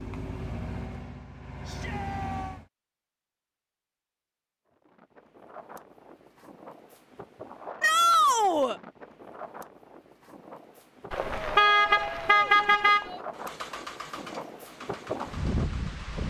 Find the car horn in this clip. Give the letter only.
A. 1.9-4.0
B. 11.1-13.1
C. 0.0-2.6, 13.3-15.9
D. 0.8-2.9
B.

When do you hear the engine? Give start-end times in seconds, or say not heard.
0.0-2.6, 13.3-15.9.